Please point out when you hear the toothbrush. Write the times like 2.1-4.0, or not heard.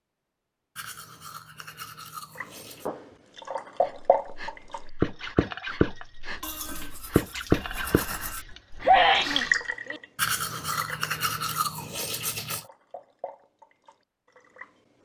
0.8-2.9, 6.4-8.4, 10.2-12.7.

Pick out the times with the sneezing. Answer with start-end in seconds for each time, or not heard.
8.8-10.0.